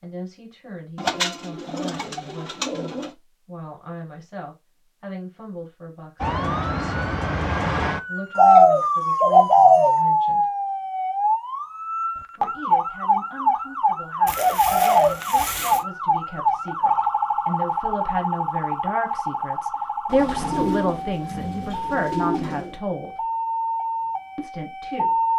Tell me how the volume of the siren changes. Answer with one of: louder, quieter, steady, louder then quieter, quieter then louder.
quieter.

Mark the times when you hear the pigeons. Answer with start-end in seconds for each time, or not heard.
0.9-3.1, 8.3-9.9, 14.2-15.8, 20.1-22.8.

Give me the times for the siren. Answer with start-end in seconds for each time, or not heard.
6.2-25.3.